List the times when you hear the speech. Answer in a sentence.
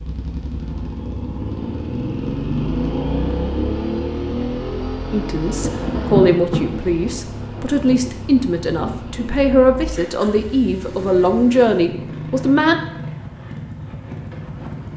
The speech can be heard from 5.1 to 12.8 s.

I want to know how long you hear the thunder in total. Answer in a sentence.
You can hear the thunder for 5 seconds altogether.